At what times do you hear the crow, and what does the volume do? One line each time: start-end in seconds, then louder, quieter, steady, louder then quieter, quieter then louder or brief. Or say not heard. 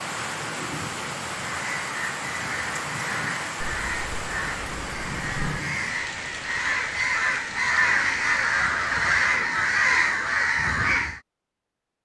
1.4-11.2 louder.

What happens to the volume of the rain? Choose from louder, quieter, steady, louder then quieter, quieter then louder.
quieter.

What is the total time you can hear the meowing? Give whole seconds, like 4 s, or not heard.
2 s.